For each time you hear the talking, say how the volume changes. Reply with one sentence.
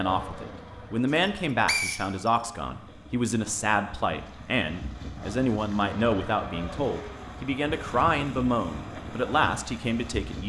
The talking can be heard from 0.0 to 10.4 s, at a steady volume.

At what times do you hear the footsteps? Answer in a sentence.
You can't hear the footsteps here.